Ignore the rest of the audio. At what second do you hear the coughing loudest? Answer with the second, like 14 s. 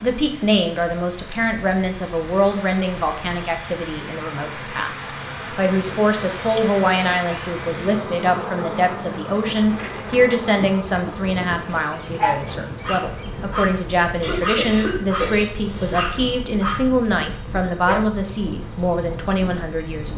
15 s.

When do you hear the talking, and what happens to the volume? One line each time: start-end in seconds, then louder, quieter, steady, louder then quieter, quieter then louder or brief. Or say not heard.
0.0-20.1 steady.